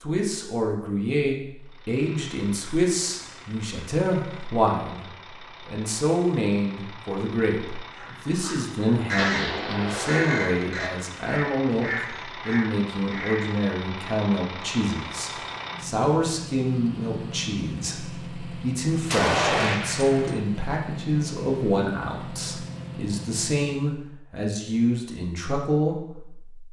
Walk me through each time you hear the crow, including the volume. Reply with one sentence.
The crow can be heard from 8.0 to 13.5 s, getting quieter.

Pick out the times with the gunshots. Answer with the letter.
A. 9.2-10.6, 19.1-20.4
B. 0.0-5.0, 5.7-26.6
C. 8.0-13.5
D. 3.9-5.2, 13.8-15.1
A.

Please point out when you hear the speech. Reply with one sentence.
The speech can be heard from 0.0 to 5.0 s and from 5.7 to 26.6 s.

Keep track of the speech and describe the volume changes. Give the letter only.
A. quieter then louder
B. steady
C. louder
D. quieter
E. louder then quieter
B.